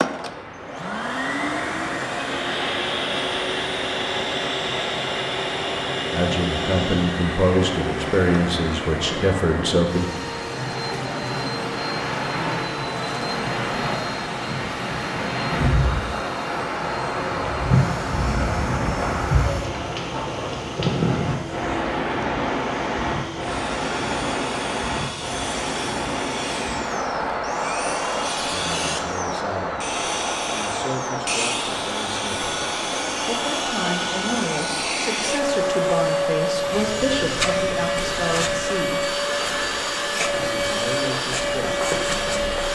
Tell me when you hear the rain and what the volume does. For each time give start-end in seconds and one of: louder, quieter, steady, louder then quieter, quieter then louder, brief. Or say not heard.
0.0-42.6 louder then quieter.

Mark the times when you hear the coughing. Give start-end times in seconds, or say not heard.
not heard.